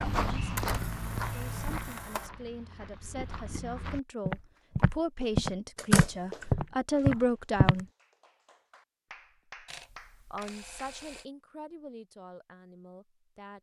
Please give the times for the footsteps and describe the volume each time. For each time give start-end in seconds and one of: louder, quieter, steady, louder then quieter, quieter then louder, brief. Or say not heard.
0.0-7.8 quieter then louder.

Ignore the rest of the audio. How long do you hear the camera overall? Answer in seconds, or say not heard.
4 s.